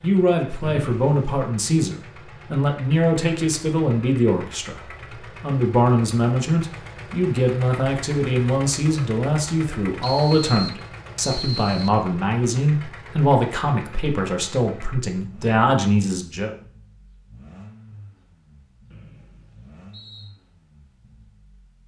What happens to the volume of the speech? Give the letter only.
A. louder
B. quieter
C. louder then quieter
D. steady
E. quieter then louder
D.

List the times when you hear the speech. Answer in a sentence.
You can hear the speech from 0.0 to 16.5 s.